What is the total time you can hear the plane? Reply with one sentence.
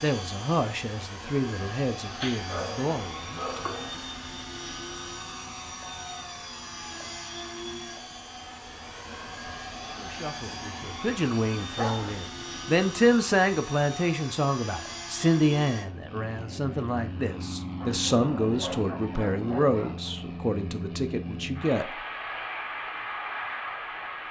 You can hear the plane for 24 seconds altogether.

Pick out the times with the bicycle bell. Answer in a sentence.
You can't hear the bicycle bell here.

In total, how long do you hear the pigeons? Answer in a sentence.
You can't hear the pigeons here.